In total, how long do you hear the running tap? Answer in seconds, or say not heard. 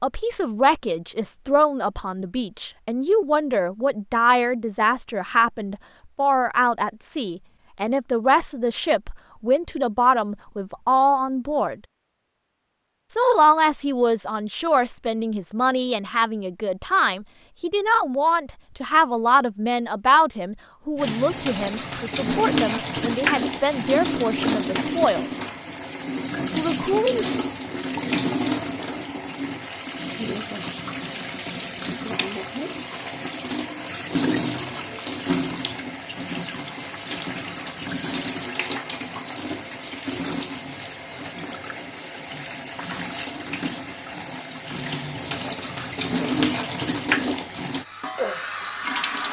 28 s.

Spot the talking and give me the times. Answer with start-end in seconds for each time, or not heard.
0.0-11.8, 13.1-25.2, 26.6-27.3.